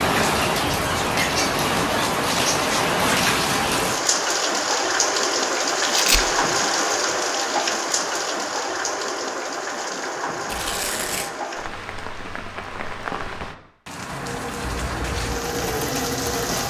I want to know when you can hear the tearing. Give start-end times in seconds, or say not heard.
5.8-6.2, 10.4-11.3.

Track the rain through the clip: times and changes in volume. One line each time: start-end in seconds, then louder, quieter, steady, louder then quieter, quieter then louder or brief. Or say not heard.
0.0-16.6 quieter.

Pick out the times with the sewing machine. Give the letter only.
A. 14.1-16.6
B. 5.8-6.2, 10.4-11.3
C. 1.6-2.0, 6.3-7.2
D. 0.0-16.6
A.